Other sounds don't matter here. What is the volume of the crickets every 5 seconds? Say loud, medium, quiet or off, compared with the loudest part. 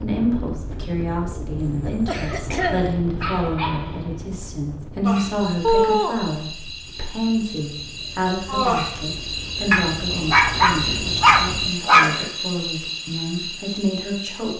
off, loud, loud.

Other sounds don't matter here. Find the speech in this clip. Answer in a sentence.
You can hear the speech from 0.0 to 14.5 s.